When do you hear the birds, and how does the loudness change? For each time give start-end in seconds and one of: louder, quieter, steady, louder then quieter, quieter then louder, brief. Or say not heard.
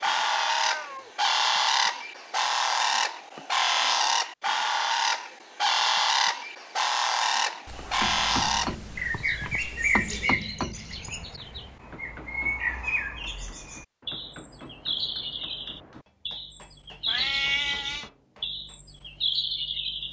0.0-20.0 quieter.